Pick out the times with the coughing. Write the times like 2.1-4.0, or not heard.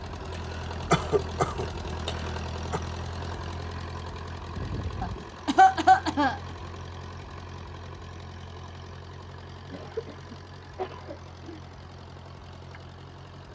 0.9-2.8, 5.0-6.4, 9.7-11.6.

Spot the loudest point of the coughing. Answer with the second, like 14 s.
6 s.